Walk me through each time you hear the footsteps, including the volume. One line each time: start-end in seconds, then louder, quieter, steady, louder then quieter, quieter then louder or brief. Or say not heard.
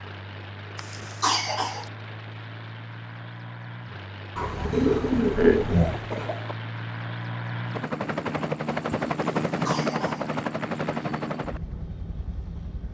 not heard.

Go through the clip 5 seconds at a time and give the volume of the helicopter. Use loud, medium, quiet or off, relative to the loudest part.
medium, loud, loud.